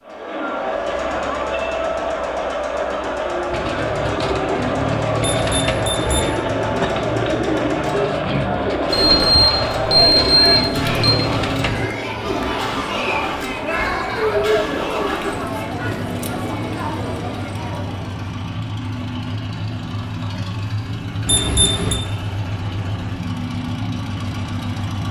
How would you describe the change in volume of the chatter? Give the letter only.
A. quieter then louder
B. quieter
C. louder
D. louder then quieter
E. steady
E.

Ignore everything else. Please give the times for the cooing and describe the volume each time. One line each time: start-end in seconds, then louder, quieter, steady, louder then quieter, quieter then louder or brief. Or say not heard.
3.5-12.8 steady.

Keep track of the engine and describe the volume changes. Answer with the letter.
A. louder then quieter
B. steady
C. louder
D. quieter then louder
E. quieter
C.